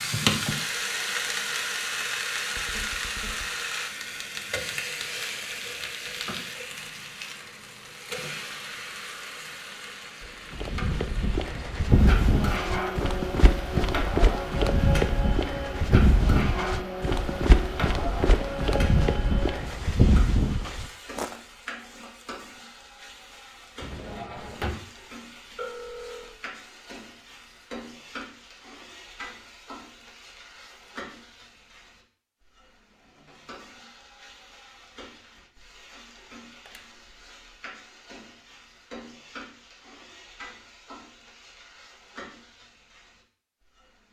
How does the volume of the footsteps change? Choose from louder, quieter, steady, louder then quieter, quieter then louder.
steady.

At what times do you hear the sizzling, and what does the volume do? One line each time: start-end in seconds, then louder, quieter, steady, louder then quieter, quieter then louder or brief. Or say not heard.
0.0-44.0 quieter.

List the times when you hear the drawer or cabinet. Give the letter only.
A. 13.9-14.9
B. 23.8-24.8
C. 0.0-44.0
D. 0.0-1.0
B.